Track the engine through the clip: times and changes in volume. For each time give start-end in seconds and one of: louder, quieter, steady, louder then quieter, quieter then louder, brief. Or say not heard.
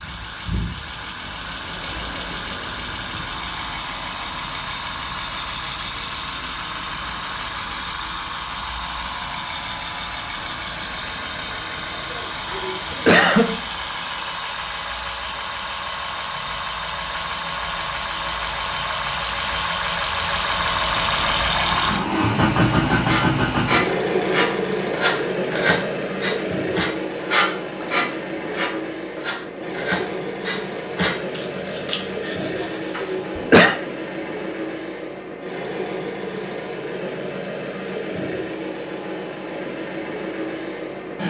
0.0-41.2 louder then quieter.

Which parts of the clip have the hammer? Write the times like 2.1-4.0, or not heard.
not heard.